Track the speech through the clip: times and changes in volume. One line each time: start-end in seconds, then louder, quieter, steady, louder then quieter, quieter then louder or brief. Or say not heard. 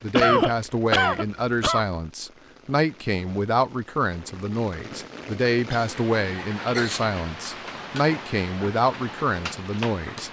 0.0-10.2 steady.